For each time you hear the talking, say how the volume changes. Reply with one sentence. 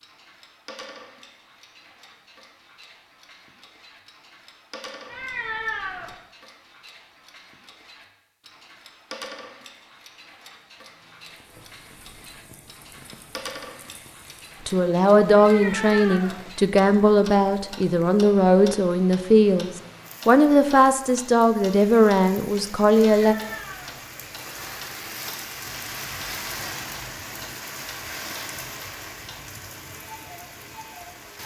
You can hear the talking from 14.7 to 23.4 s, at a steady volume.